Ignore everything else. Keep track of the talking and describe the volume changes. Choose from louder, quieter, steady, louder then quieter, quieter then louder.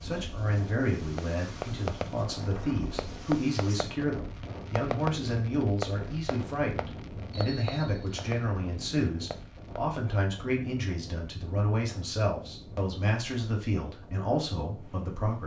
steady.